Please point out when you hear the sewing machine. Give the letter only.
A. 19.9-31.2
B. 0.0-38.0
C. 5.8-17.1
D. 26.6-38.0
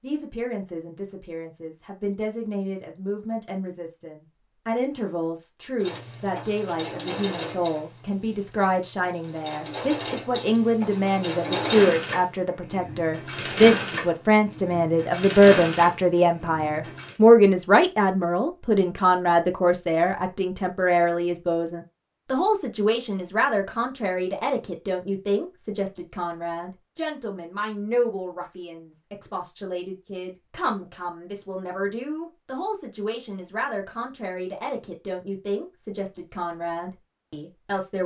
C.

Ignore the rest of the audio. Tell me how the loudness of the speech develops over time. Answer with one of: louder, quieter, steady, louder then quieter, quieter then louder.
louder then quieter.